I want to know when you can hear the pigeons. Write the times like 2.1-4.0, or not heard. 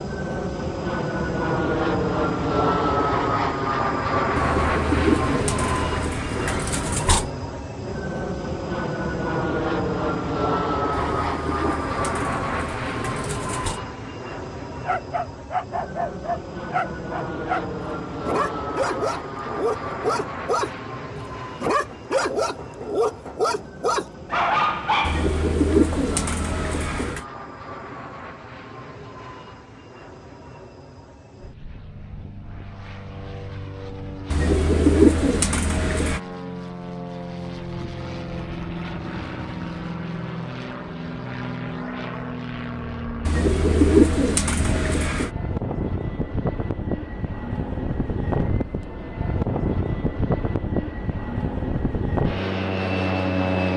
4.3-7.3, 11.2-13.8, 25.0-27.2, 34.3-36.2, 43.2-45.3.